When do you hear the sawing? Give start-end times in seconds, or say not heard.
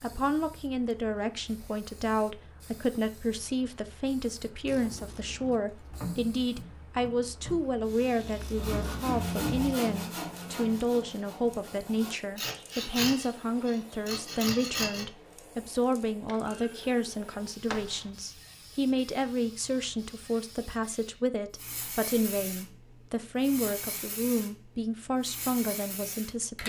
8.6-15.1.